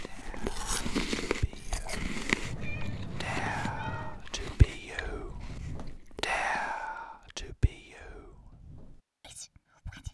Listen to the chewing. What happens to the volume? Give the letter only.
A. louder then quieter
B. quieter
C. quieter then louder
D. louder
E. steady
B.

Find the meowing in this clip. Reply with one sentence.
You can hear the meowing from 2.4 to 4.2 s.